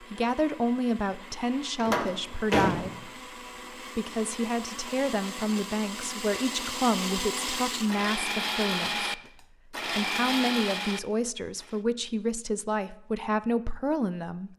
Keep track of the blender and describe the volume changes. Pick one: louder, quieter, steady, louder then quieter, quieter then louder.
louder.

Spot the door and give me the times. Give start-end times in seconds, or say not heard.
1.8-3.0.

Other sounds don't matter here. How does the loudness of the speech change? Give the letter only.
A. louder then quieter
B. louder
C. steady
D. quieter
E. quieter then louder
C.